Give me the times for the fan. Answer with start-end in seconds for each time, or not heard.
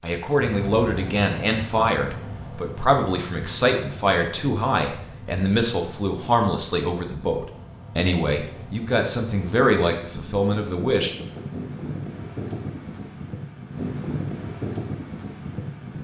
0.0-15.9.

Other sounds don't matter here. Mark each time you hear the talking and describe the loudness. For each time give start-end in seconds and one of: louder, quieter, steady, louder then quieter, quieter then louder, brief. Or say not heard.
0.0-11.2 steady.